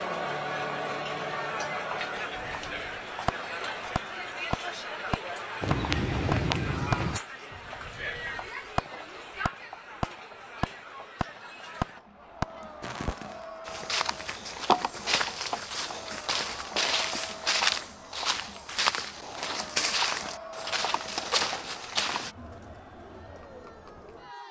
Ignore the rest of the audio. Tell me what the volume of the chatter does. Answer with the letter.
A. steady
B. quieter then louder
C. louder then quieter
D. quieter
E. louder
D.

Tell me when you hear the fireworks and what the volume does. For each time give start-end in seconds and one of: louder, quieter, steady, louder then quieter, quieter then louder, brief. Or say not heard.
2.4-13.4 steady.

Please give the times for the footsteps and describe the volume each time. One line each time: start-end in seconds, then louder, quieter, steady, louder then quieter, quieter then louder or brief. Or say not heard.
5.6-7.2 brief
13.7-22.4 steady.